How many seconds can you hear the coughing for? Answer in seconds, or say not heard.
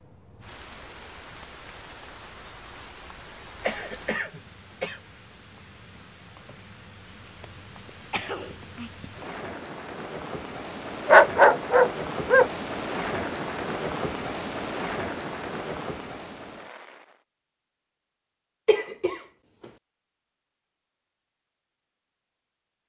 3 s.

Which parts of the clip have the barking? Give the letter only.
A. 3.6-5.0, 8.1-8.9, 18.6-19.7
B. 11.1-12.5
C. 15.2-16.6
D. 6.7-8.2
B.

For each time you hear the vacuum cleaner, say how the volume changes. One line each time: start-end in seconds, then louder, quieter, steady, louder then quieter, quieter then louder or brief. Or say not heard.
not heard.